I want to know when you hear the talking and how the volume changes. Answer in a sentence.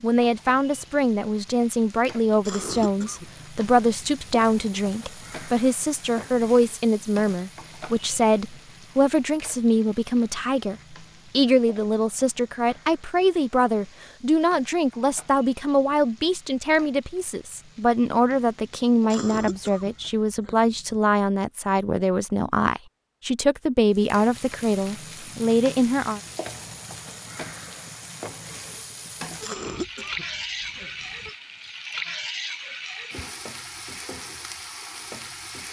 The talking can be heard from 0.0 to 26.2 s, at a steady volume.